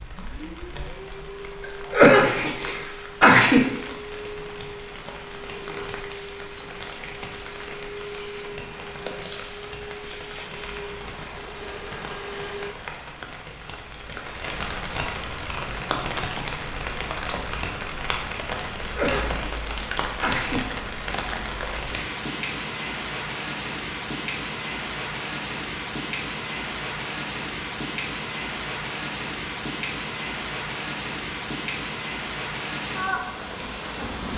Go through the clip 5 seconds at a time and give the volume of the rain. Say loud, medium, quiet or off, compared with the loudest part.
medium, medium, medium, loud, loud, loud, loud.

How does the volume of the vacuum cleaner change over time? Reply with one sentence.
The volume of the vacuum cleaner stays about the same.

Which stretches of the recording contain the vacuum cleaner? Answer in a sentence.
The vacuum cleaner can be heard from 0.1 to 12.8 s.